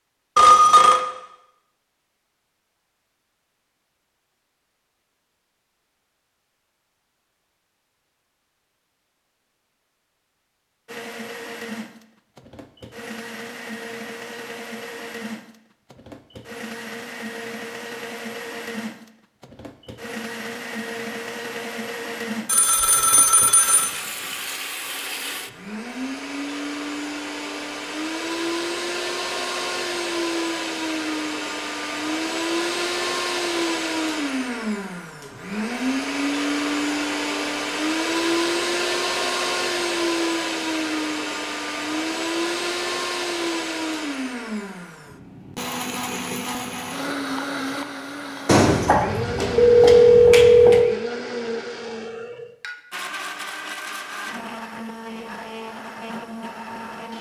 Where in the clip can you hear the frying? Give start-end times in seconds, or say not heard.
not heard.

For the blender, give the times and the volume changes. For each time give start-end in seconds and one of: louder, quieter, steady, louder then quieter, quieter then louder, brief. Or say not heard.
10.8-57.1 louder then quieter.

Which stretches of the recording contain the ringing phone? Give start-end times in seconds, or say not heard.
0.3-1.1, 22.4-23.9, 48.5-51.0.